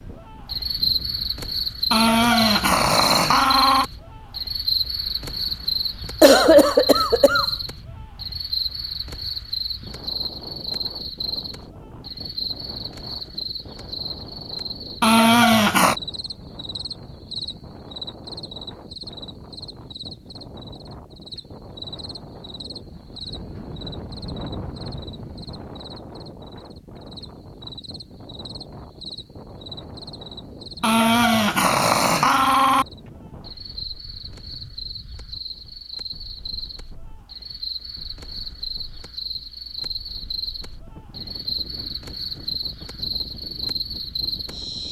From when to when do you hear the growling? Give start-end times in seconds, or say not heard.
1.9-3.9, 15.0-15.9, 30.8-32.9.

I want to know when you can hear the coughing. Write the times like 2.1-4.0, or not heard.
6.2-7.5.